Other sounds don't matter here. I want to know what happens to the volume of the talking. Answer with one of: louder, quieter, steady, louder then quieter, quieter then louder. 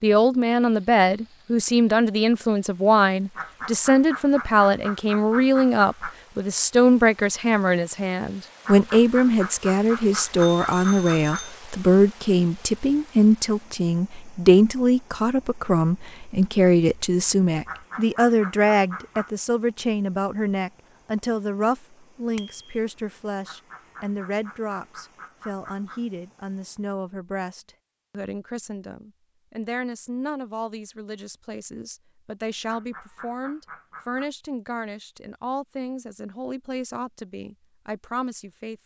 quieter.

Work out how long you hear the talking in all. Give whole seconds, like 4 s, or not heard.
39 s.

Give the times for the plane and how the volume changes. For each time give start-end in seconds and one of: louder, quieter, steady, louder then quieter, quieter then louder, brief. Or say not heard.
not heard.